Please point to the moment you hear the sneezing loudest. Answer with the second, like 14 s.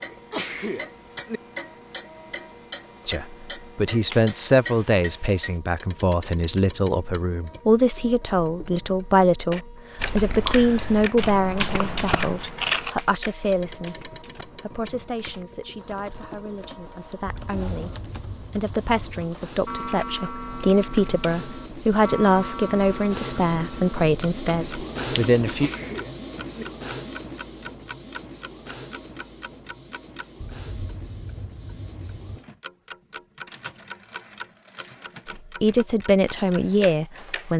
1 s.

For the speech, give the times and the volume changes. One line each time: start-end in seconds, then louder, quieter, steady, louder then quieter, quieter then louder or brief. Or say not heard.
3.0-25.7 quieter then louder
35.4-37.5 brief.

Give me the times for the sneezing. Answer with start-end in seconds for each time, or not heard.
0.1-1.4, 25.4-26.6.